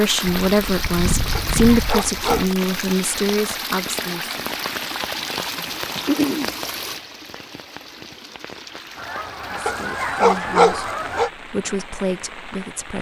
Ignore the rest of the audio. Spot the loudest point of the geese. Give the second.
6 s.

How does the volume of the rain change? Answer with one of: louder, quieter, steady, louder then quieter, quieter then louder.
quieter.